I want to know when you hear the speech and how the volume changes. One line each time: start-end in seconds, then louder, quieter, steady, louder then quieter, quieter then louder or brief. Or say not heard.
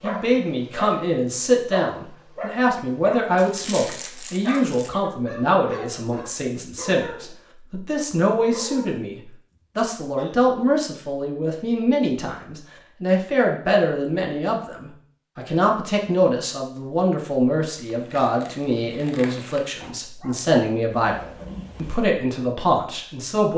0.0-23.5 steady.